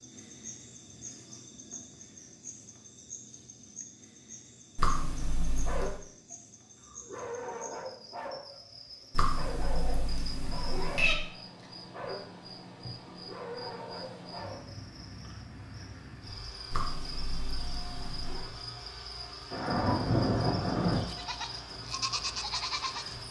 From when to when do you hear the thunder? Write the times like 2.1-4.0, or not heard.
19.5-21.0.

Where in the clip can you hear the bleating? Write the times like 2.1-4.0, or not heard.
20.8-23.2.